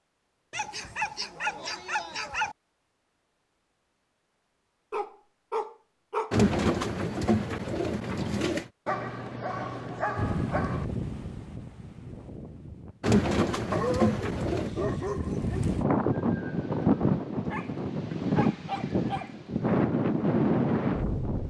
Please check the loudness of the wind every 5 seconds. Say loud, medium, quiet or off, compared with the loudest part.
off, off, medium, loud, loud.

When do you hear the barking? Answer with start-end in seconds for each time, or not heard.
0.5-2.5, 4.9-6.3, 8.8-10.8, 13.7-15.7, 17.5-19.5.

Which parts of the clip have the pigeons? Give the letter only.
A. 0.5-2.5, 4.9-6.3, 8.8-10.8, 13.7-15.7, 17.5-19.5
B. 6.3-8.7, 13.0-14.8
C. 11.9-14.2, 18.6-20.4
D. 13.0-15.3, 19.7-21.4
B.